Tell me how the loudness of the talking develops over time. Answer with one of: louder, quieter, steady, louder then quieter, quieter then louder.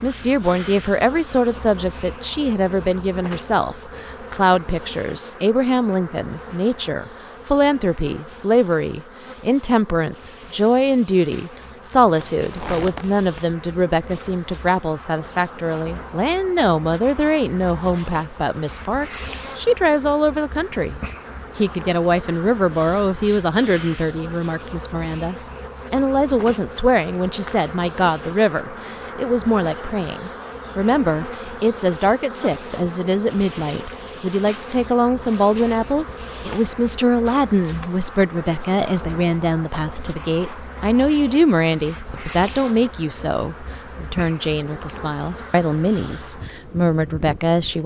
steady.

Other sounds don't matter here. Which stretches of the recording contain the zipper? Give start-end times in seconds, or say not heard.
12.2-13.1.